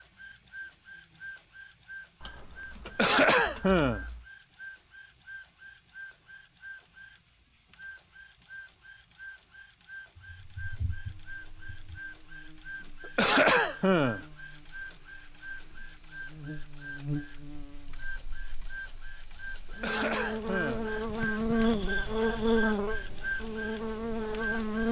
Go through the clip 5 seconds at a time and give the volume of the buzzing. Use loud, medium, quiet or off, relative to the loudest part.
off, off, quiet, quiet, loud.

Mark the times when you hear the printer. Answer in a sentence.
You can hear the printer from 0.0 to 24.8 s.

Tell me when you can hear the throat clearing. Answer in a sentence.
You can hear the throat clearing from 2.9 to 4.0 s, from 13.2 to 14.2 s and from 19.8 to 20.9 s.